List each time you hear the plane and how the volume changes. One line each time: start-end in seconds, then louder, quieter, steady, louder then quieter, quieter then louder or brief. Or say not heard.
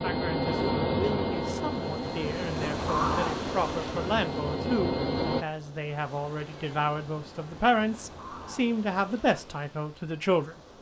0.0-5.5 quieter then louder.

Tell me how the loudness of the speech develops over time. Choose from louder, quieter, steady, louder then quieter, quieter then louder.
louder.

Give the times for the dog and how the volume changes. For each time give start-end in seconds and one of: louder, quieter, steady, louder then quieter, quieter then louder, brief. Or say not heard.
not heard.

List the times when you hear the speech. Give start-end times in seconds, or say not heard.
0.0-10.6.